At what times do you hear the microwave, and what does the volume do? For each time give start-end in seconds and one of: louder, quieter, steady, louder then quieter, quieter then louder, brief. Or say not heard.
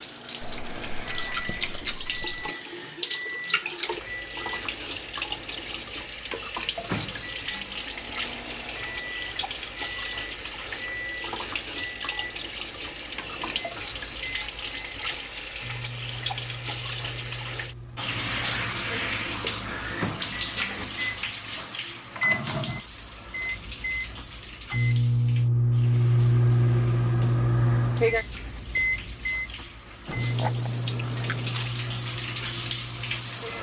0.0-33.5 louder.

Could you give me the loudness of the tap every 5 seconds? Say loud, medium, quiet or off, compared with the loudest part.
loud, loud, loud, loud, medium, quiet, medium.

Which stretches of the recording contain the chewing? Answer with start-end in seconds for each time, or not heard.
0.4-2.5, 30.1-31.7.